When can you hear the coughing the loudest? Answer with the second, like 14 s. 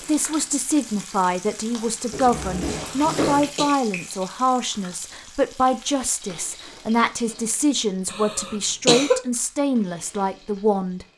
9 s.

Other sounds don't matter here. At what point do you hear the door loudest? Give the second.
3 s.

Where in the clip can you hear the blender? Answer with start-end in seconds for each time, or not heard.
not heard.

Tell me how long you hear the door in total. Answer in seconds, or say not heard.
2 s.